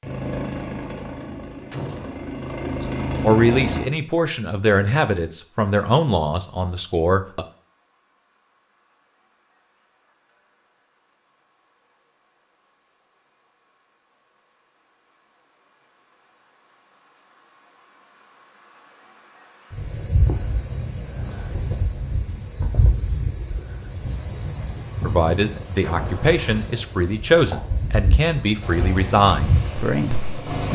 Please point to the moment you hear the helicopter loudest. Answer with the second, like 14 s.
3 s.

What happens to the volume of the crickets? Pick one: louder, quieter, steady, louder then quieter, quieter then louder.
louder.